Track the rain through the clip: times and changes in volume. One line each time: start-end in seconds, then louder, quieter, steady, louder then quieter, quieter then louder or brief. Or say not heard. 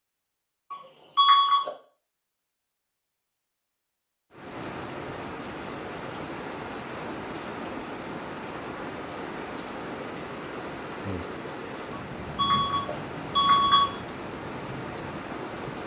4.3-15.8 steady.